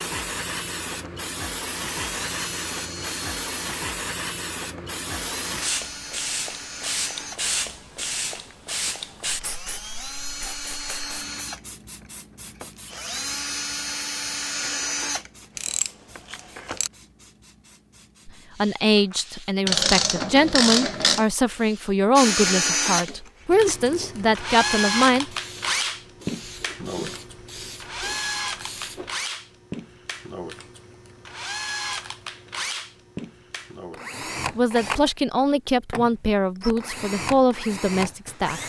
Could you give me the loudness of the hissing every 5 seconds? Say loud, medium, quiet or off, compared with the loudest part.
loud, loud, quiet, quiet, quiet, medium, off, off.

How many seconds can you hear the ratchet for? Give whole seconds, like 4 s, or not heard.
3 s.